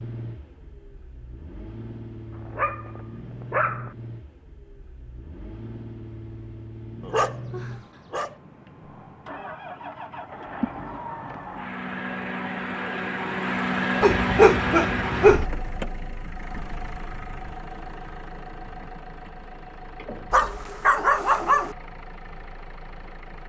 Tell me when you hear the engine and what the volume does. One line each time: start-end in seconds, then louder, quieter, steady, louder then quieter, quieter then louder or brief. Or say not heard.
0.0-23.4 louder then quieter.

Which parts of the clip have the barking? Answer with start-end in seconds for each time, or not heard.
2.4-3.9, 7.0-8.3, 14.0-15.4, 20.3-21.8.